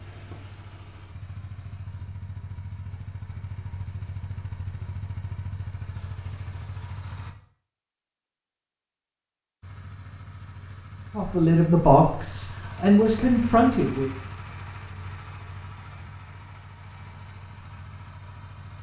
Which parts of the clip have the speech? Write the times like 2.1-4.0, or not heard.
11.2-14.1.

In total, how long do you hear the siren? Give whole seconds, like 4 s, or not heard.
not heard.